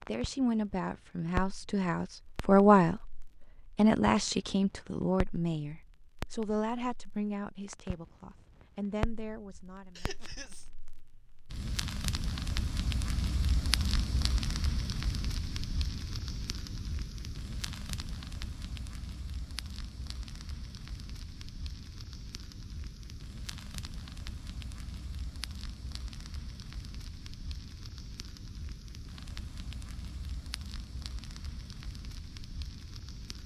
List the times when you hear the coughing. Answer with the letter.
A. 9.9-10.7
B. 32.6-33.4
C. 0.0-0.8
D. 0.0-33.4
A.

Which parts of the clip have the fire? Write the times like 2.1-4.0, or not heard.
0.0-33.4.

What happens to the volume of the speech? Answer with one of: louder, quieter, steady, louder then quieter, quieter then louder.
louder then quieter.